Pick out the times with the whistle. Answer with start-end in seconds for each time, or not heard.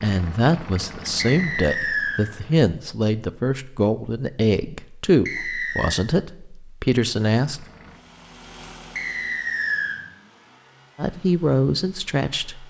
1.1-2.2, 5.2-6.0, 8.9-9.9.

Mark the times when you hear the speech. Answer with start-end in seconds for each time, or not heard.
0.0-7.7, 10.9-12.6.